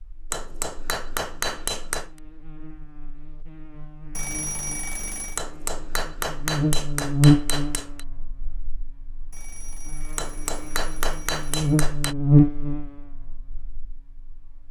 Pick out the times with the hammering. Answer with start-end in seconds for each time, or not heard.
0.3-2.1, 5.3-8.1, 10.2-12.2.